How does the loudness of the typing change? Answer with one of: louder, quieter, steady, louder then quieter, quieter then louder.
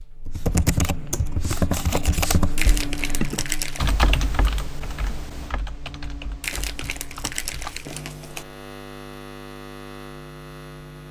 quieter.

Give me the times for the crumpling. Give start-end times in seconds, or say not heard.
2.5-4.0, 6.4-8.4.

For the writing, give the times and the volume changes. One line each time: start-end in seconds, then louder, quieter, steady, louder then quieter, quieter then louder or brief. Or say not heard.
not heard.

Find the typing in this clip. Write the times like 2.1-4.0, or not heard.
0.2-7.9.